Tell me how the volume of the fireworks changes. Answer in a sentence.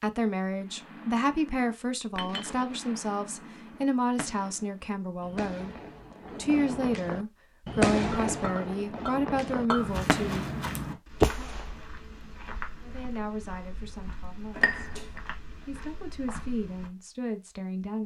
The loudness of the fireworks goes up.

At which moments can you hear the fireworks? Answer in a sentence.
The fireworks can be heard from 0.6 to 11.7 s.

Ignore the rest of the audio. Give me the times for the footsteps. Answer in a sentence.
The footsteps can be heard from 9.8 to 16.9 s.